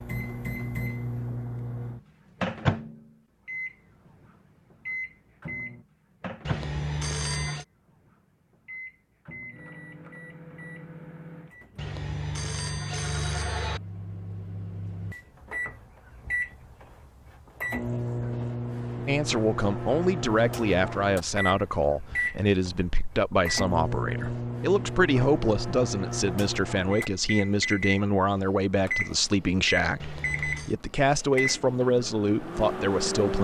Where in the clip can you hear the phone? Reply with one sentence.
The phone can be heard from 6.5 to 7.7 s, from 11.8 to 13.8 s and from 29.9 to 30.8 s.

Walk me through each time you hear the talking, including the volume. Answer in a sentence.
The talking can be heard from 19.1 to 33.3 s, at a steady volume.